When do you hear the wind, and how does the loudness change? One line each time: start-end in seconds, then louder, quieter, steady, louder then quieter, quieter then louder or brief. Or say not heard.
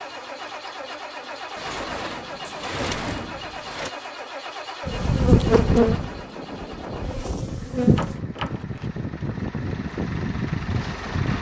4.9-11.3 louder.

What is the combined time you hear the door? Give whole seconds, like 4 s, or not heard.
3 s.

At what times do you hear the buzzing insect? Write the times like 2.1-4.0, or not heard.
4.8-8.2.